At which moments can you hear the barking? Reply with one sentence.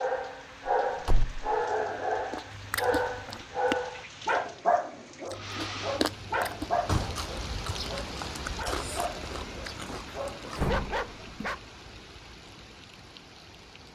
You can hear the barking from 0.0 to 11.6 s.